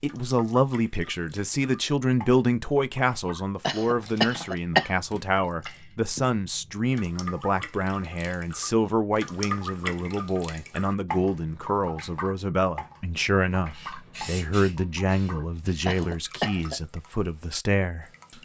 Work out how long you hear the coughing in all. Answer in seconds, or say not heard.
2 s.